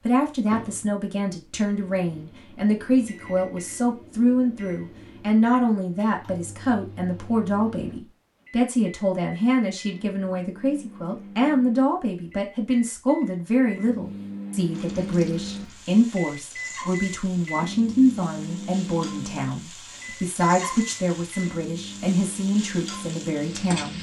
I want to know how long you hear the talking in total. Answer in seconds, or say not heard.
24 s.